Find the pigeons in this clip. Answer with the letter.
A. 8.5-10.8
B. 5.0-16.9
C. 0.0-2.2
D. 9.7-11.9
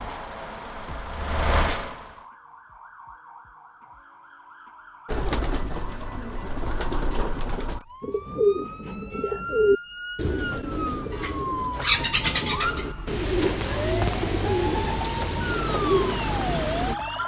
B.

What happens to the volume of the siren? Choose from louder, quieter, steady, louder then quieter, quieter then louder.
louder.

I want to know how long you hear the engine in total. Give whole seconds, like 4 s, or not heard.
2 s.